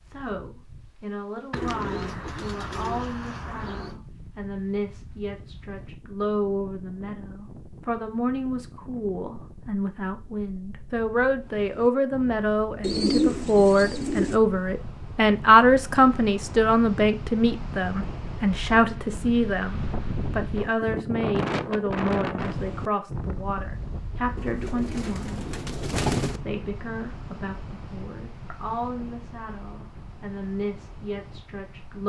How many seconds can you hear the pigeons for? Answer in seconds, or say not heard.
6 s.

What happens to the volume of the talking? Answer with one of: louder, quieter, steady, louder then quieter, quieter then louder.
louder then quieter.